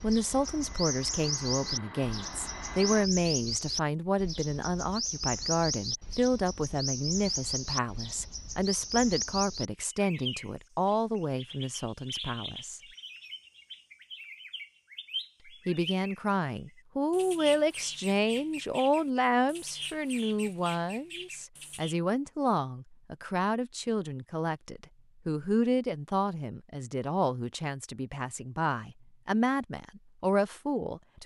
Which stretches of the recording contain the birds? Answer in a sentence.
You can hear the birds from 0.0 to 21.9 s.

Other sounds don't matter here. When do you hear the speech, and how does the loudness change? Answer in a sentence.
You can hear the speech from 0.0 to 12.8 s, at a steady volume; and from 15.4 to 31.2 s, at a steady volume.